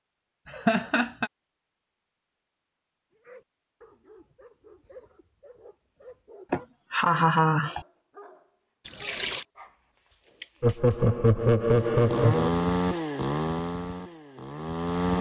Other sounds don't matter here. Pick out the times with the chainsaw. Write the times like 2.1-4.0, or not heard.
11.7-15.1.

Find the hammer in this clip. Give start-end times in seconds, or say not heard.
not heard.